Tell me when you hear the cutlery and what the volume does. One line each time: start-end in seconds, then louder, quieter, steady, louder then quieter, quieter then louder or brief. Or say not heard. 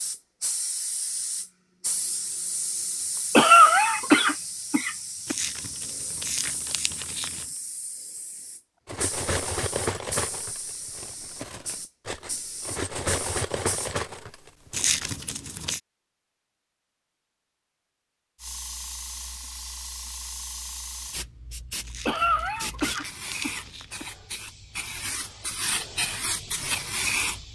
8.8-15.1 quieter then louder.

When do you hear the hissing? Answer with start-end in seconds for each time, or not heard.
0.0-13.9, 18.4-27.5.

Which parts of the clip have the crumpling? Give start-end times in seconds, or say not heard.
5.2-7.5, 14.7-15.8, 21.8-23.9.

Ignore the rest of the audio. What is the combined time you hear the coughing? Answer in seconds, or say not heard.
4 s.